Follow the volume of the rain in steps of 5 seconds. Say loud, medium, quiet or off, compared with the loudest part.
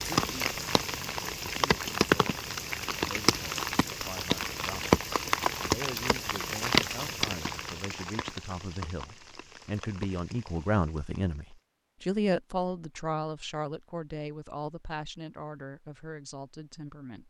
loud, loud, quiet, off.